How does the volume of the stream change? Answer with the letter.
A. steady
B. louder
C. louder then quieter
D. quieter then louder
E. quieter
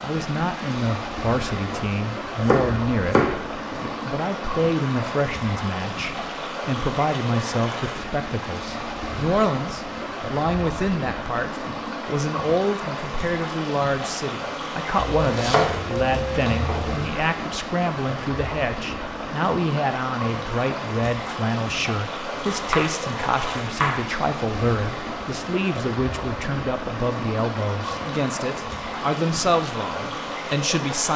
A.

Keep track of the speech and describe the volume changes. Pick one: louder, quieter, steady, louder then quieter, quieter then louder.
steady.